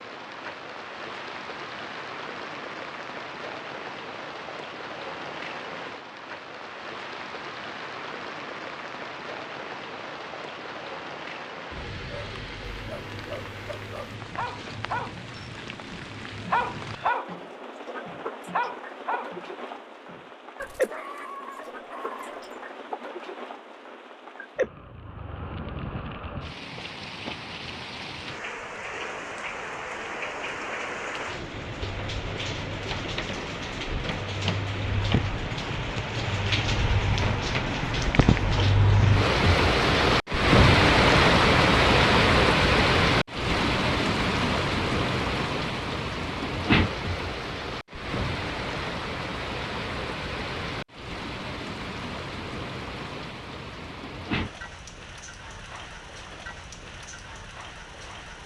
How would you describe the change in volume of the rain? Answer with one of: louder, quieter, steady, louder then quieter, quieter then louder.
louder then quieter.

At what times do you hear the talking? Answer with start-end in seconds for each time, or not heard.
not heard.